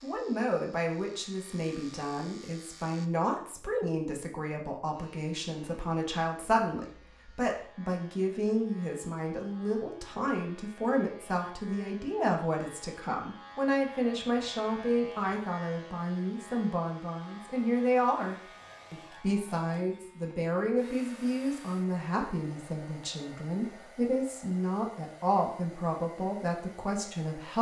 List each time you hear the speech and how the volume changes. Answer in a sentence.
The speech can be heard from 0.0 to 27.5 s, at a steady volume.